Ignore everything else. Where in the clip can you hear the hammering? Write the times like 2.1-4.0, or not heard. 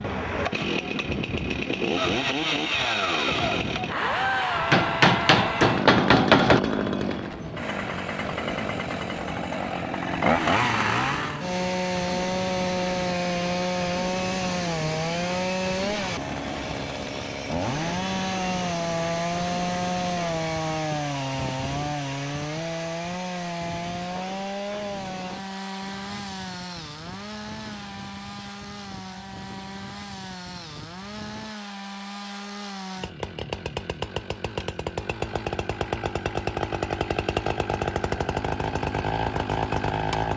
4.7-6.6.